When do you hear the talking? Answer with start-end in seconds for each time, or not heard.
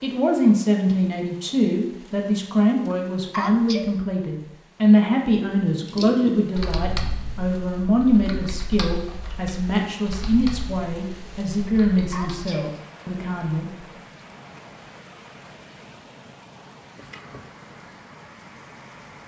0.0-13.9.